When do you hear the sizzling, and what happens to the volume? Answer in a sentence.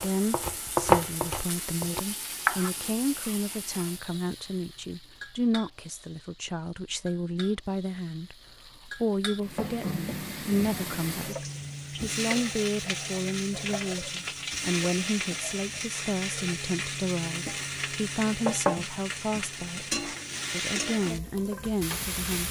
You can hear the sizzling from 0.0 to 22.4 s, getting quieter then louder.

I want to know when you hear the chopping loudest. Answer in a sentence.
The loudest moment of the chopping is at 1 second.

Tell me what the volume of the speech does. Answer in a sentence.
The volume of the speech stays about the same.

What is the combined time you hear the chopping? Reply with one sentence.
The chopping can be heard for 3 seconds in total.